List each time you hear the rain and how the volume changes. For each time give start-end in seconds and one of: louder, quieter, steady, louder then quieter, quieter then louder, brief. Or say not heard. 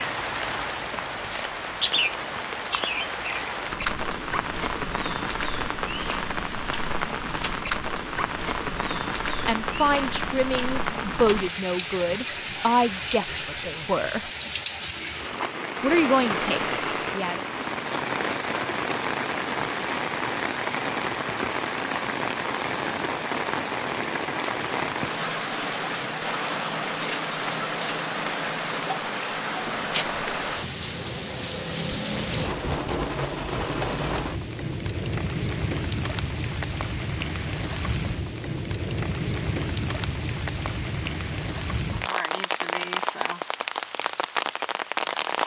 0.0-45.4 steady.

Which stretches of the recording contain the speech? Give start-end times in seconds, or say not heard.
9.4-14.3, 15.8-17.4.